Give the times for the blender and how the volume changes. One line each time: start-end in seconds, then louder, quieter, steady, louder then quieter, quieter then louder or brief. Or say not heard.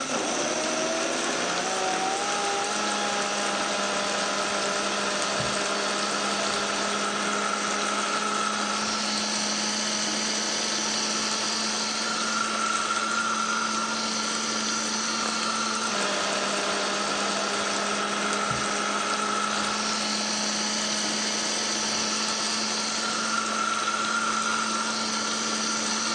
0.0-26.1 steady.